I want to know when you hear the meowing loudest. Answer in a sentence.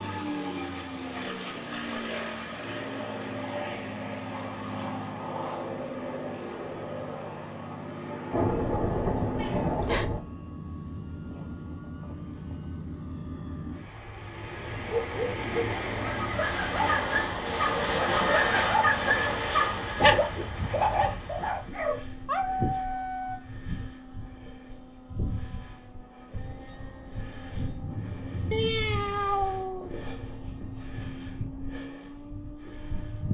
The volume of the meowing peaks at 29 seconds.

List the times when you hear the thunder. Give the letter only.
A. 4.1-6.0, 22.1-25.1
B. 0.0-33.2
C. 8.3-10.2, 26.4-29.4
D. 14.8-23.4
C.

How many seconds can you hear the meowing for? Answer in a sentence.
You can hear the meowing for 2 seconds altogether.